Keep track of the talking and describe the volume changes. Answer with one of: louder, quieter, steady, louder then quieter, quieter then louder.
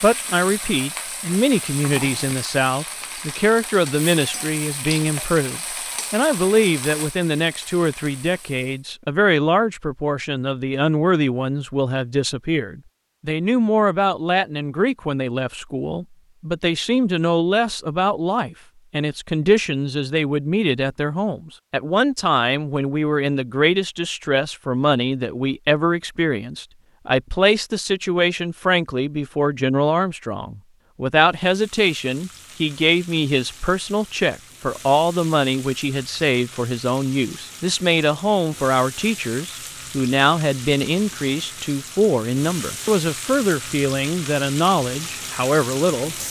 steady.